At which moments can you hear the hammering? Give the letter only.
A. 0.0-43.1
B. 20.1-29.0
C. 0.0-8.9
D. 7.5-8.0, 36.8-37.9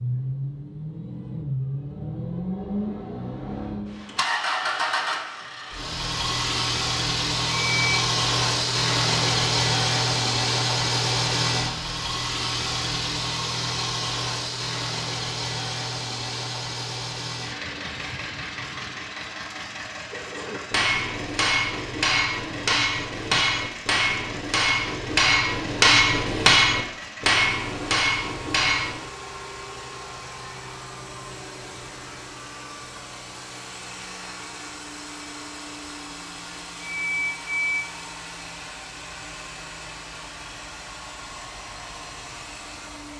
B.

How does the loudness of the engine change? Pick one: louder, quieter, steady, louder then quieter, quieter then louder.
quieter.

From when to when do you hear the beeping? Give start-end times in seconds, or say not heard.
7.5-8.0, 36.8-37.9.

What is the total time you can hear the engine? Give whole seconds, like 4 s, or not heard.
43 s.